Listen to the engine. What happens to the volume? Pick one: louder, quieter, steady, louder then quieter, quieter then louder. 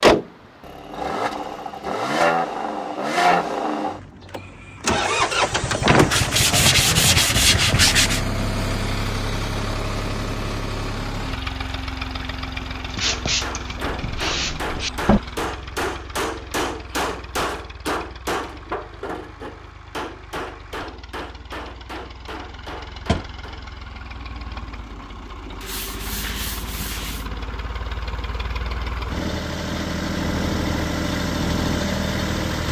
quieter then louder.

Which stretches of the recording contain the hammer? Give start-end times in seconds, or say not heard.
12.8-23.6.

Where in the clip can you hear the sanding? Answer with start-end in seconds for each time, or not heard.
6.0-8.2, 12.9-14.9, 25.6-27.3.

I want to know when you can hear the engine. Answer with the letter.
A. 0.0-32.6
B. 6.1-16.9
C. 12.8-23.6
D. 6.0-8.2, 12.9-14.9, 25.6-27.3
A.